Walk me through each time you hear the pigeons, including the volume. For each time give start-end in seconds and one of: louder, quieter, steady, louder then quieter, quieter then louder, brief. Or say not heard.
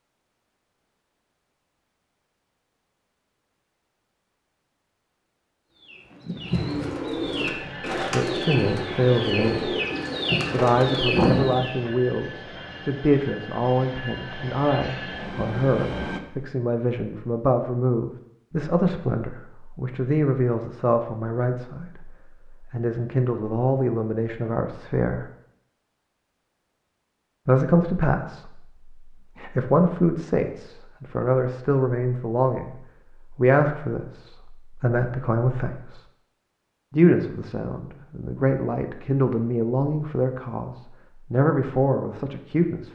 5.8-11.7 louder.